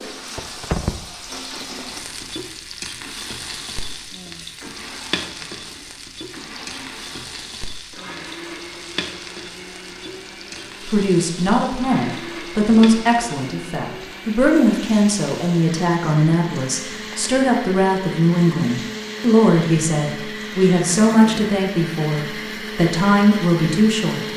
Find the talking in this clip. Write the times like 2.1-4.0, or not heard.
10.8-24.2.